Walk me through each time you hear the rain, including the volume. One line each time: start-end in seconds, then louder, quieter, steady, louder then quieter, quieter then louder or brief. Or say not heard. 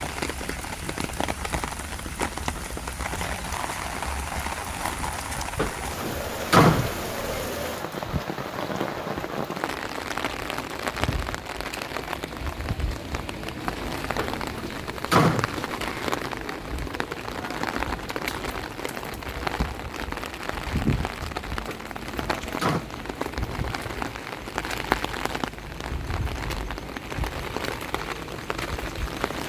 0.0-29.4 steady.